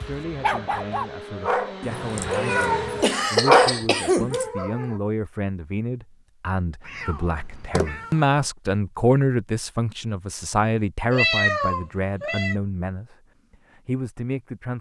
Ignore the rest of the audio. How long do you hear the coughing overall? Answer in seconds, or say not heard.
3 s.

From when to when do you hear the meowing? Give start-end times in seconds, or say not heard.
1.9-3.0, 6.8-8.2, 11.1-12.6.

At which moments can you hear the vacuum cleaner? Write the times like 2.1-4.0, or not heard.
0.0-3.2.